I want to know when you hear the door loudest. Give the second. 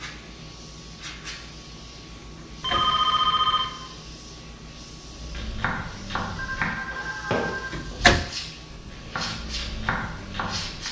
8 s.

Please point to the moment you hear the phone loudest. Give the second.
3 s.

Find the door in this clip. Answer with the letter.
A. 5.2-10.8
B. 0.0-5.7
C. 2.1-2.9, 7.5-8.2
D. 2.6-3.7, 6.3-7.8
C.